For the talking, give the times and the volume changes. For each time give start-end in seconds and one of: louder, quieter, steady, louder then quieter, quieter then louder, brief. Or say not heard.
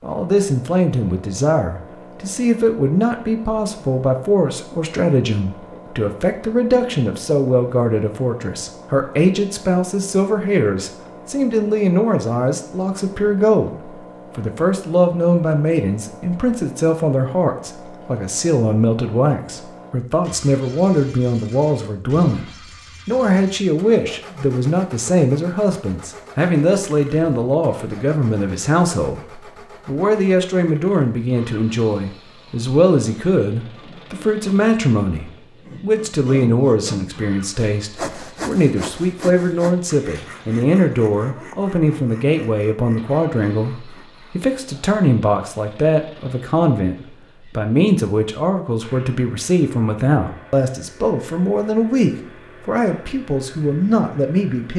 0.0-54.7 steady.